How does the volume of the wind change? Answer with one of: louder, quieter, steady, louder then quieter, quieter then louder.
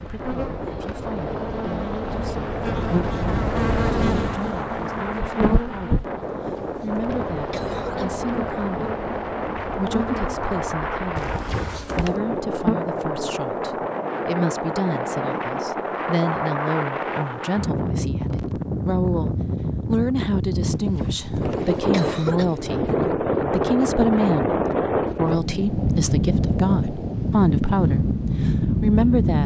louder.